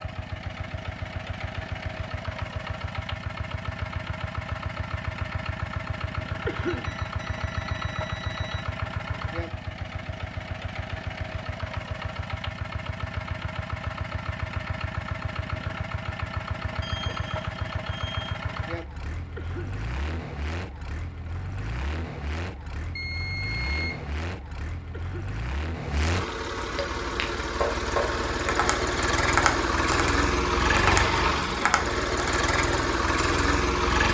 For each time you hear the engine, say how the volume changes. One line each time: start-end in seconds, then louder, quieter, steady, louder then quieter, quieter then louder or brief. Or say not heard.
0.0-34.0 louder.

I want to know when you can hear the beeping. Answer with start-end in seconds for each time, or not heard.
6.7-8.7, 16.8-18.4, 22.9-24.1.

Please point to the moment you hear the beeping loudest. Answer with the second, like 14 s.
24 s.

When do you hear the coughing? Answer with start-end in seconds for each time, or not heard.
6.5-7.0, 19.4-19.9, 24.9-25.3.